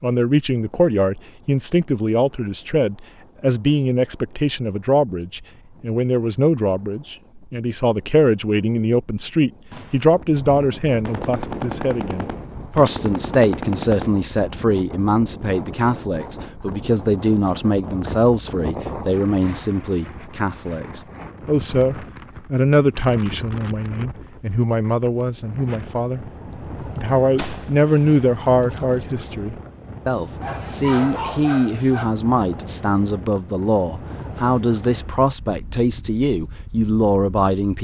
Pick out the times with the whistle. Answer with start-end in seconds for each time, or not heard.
not heard.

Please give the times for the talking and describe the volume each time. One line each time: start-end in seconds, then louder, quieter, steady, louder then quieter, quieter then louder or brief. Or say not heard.
0.0-37.7 steady.